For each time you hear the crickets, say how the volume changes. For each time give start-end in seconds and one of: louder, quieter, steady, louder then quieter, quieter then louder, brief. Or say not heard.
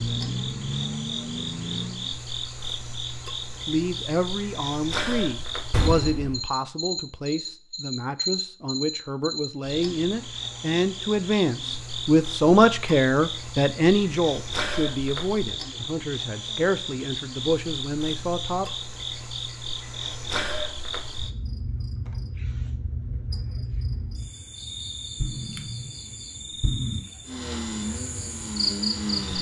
0.0-29.3 steady.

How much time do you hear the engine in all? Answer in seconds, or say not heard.
4 s.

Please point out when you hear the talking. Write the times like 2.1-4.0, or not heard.
3.6-18.6.